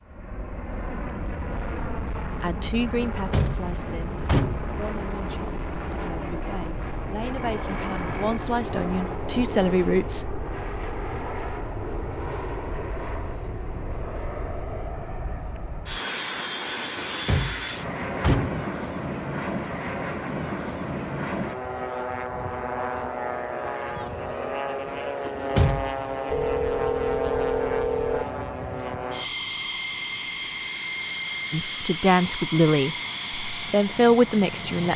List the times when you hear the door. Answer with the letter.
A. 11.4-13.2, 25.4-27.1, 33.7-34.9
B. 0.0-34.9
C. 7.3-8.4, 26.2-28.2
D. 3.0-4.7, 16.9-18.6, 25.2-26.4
D.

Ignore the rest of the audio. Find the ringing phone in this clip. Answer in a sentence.
The ringing phone can be heard from 7.3 to 8.4 s and from 26.2 to 28.2 s.